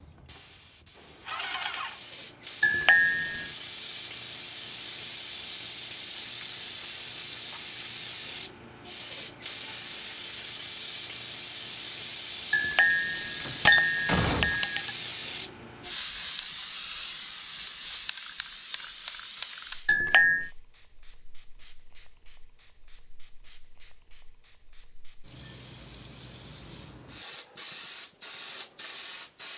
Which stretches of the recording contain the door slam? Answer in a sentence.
You can hear the door slam from 13.4 to 14.6 s.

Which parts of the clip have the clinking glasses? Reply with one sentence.
You can hear the clinking glasses from 2.6 to 3.5 s, from 12.5 to 14.9 s and from 19.9 to 20.5 s.